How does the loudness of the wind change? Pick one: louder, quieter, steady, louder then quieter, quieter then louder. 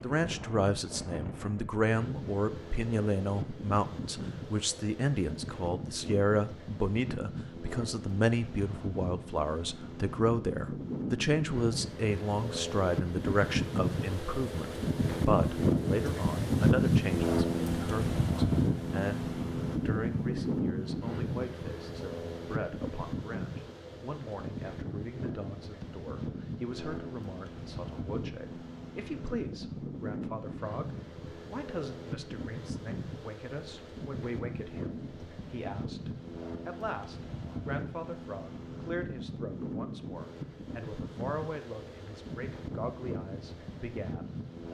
louder then quieter.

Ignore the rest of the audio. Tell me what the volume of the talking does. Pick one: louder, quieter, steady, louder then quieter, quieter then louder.
quieter.